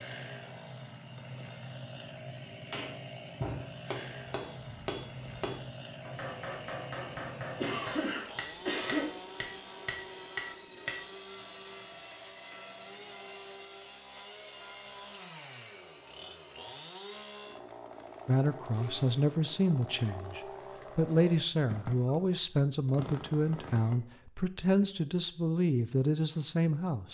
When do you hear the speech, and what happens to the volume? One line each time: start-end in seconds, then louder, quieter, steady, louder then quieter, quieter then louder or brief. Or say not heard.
18.2-27.0 steady.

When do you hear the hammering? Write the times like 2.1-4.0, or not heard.
2.7-11.2.